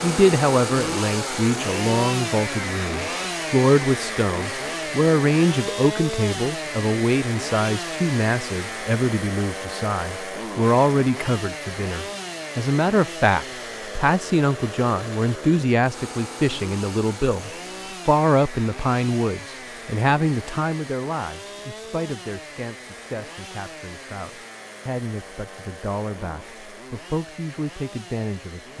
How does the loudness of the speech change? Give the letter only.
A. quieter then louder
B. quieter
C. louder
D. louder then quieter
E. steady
B.